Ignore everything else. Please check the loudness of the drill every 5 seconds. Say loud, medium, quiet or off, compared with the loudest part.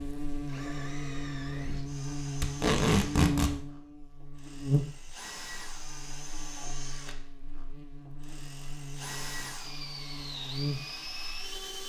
medium, loud, loud.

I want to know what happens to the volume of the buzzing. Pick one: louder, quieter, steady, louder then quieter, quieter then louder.
quieter then louder.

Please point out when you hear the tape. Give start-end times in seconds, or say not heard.
2.4-3.5.